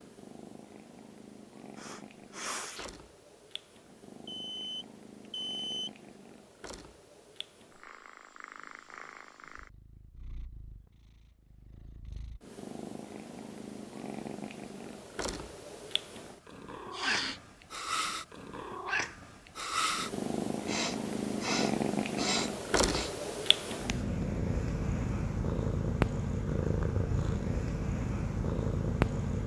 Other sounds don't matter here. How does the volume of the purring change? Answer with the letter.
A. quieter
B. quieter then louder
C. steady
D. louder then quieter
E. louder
E.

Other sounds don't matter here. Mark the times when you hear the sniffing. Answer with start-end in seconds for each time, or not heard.
1.8-2.9, 16.9-17.4, 20.6-23.1.